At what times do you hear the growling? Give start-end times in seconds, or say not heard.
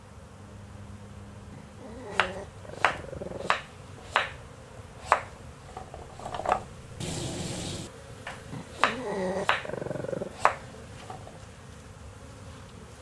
1.5-3.5, 8.5-10.3.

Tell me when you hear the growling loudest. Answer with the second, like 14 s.
9 s.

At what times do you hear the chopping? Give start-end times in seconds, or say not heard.
2.1-4.3, 5.0-9.7, 10.3-11.3.